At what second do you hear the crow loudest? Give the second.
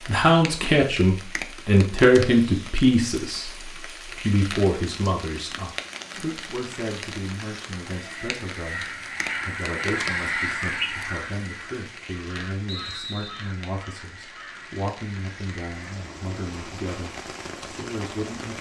10 s.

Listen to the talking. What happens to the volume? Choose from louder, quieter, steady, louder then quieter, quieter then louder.
quieter.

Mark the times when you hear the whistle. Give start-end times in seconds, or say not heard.
12.7-13.6.